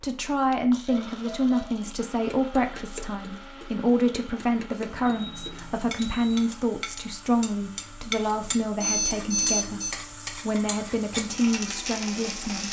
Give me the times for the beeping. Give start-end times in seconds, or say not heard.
0.2-1.6, 4.8-6.4, 8.8-9.9.